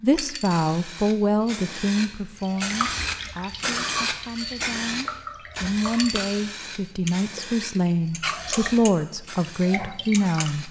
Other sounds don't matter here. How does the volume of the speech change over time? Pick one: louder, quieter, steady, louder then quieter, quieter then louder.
quieter then louder.